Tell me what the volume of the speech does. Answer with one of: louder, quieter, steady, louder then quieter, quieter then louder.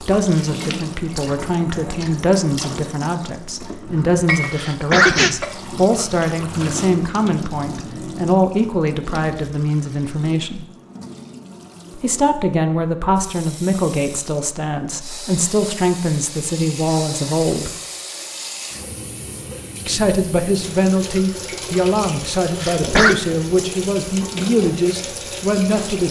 steady.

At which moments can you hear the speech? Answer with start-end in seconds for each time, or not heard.
0.0-10.7, 11.9-17.7, 19.9-26.0.